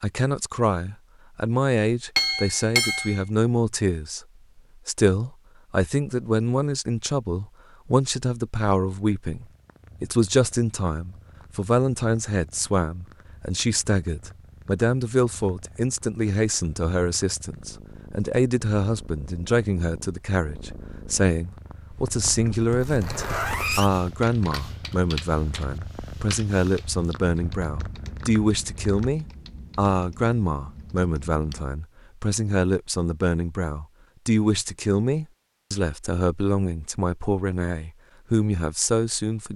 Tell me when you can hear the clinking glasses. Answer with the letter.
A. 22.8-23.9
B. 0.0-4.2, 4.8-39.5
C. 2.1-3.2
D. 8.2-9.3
C.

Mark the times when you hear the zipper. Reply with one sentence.
You can hear the zipper from 22.8 to 23.9 s.